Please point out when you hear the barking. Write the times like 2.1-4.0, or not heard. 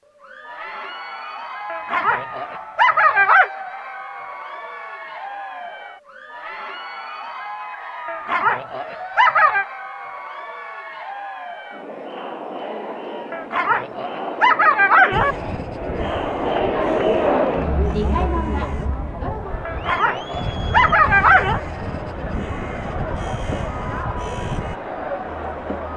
1.6-3.5, 8.1-9.7, 13.3-15.3, 19.6-21.6.